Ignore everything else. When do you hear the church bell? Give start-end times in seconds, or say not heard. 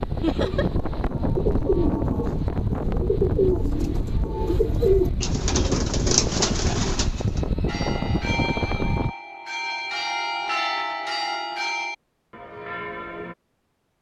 7.7-13.3.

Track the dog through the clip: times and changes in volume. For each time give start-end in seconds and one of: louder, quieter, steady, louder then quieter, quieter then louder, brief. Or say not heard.
not heard.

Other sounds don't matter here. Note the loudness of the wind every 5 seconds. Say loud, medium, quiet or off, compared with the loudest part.
loud, loud, off.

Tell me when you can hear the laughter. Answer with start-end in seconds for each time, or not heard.
0.2-0.7.